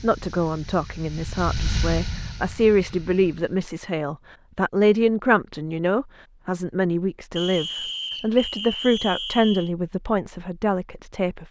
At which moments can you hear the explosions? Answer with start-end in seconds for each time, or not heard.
not heard.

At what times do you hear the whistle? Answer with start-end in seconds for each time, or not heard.
7.3-9.7.